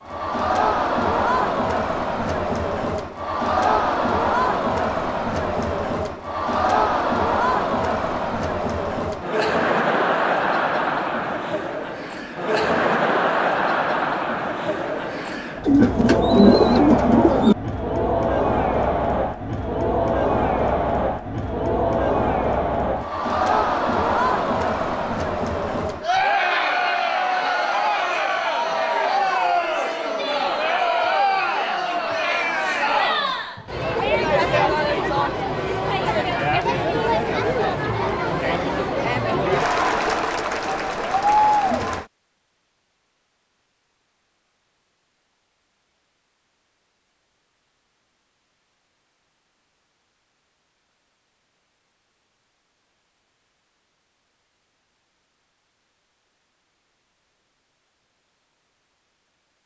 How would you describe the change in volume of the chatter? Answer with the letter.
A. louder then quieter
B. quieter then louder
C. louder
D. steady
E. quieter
D.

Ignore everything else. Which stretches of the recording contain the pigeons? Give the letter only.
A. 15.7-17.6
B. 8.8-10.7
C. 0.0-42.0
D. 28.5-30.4
A.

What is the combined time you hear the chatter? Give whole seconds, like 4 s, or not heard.
42 s.